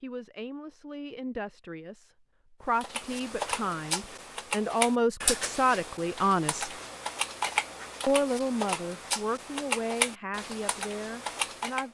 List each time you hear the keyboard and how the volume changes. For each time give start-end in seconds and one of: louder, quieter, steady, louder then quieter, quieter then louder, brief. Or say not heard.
2.8-11.8 steady.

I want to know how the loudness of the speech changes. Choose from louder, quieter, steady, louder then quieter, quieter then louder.
louder then quieter.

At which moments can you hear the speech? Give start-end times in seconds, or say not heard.
0.0-6.7, 8.1-11.8.